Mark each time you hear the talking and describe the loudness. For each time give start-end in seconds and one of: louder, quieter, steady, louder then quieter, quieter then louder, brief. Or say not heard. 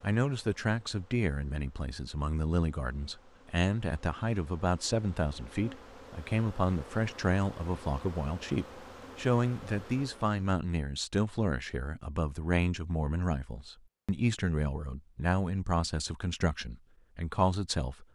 0.0-18.1 steady.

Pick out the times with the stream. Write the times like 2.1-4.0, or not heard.
not heard.